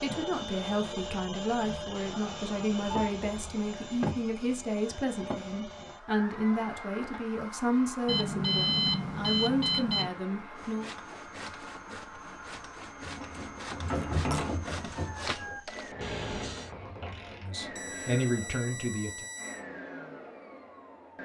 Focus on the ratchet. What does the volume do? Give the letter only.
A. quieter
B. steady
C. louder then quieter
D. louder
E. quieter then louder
A.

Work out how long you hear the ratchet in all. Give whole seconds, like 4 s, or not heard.
5 s.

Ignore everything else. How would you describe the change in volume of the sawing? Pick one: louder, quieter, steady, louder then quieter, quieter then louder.
louder.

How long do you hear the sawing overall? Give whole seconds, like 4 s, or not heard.
6 s.